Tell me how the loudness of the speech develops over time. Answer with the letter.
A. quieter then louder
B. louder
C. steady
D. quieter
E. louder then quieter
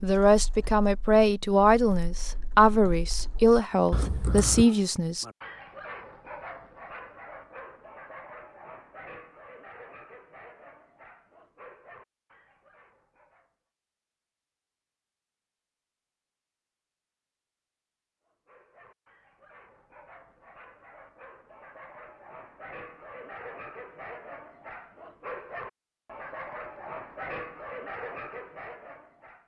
C.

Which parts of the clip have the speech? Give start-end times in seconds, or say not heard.
0.0-5.2.